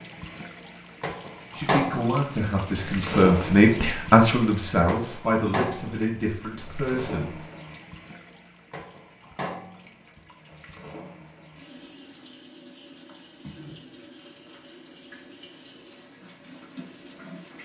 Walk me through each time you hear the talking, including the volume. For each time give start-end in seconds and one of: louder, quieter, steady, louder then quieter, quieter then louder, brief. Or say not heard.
1.6-7.4 louder then quieter.